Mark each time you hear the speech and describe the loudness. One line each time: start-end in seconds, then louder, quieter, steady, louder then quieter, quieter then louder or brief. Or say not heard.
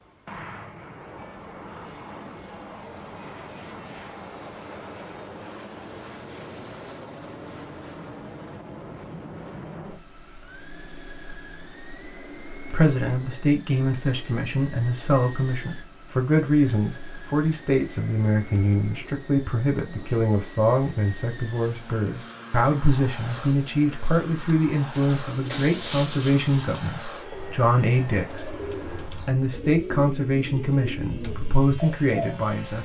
12.6-32.7 steady.